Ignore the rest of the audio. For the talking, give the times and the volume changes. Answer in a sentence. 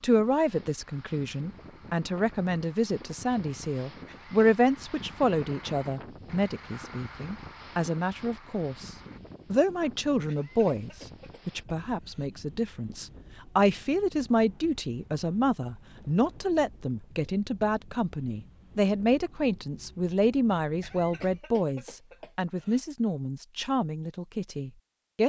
You can hear the talking from 0.0 to 25.2 s, at a steady volume.